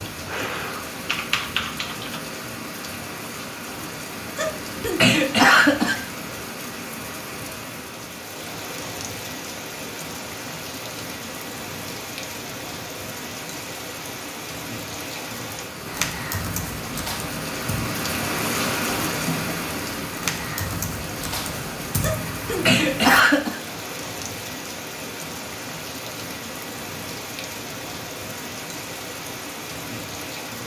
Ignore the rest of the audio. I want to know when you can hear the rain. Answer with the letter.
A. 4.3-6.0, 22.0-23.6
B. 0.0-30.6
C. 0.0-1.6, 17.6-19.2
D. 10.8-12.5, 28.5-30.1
B.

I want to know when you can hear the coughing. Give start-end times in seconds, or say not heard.
4.3-6.0, 22.0-23.6.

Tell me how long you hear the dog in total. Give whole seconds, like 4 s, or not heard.
not heard.